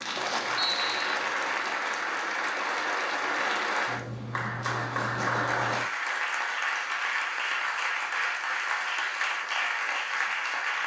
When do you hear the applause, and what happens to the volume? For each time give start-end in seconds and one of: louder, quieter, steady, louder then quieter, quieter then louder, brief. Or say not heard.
0.0-10.8 steady.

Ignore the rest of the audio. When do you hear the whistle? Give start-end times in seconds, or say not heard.
0.6-1.1.